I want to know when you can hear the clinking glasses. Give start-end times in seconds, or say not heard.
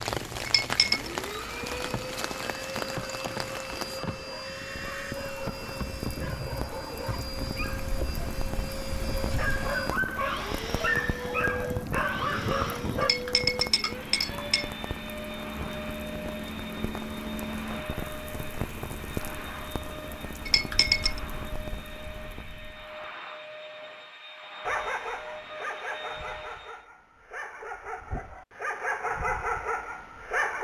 0.5-1.1, 13.0-14.7, 20.4-21.2.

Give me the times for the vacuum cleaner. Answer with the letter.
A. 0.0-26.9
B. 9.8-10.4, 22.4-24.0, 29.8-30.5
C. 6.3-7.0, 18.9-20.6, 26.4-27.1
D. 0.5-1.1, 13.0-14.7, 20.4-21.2
A.